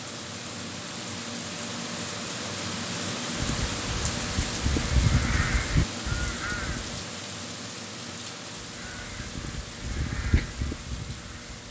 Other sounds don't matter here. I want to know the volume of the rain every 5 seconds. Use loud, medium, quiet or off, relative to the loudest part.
loud, loud, medium.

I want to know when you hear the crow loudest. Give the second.
5 s.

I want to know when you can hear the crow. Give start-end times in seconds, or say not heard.
3.4-7.0, 8.8-11.6.